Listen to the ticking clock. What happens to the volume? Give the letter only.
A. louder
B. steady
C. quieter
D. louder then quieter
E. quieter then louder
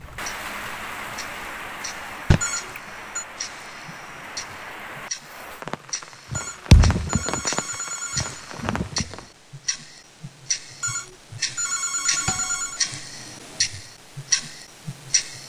A.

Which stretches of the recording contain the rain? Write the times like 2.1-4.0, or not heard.
0.0-9.3.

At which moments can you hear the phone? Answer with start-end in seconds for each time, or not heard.
2.4-3.2, 6.3-8.4, 10.8-12.8.